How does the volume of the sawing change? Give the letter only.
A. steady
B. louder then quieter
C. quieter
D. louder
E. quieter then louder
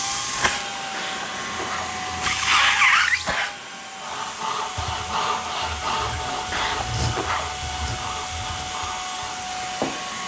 C.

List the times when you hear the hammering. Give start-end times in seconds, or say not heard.
not heard.